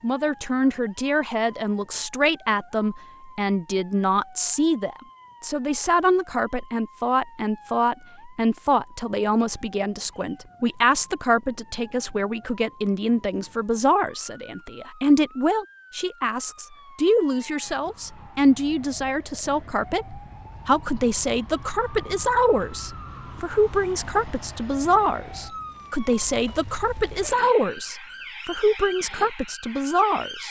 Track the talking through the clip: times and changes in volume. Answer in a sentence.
The talking can be heard from 0.0 to 30.4 s, at a steady volume.